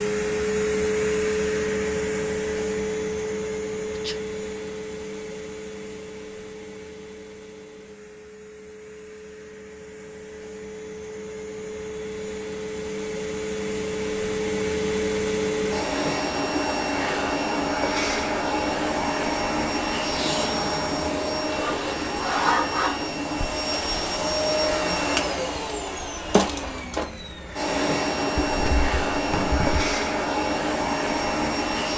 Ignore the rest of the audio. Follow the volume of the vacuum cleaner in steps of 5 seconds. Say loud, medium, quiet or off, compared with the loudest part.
loud, quiet, medium, loud, loud, loud, loud.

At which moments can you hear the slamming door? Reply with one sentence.
The slamming door can be heard from 28.4 to 29.9 s.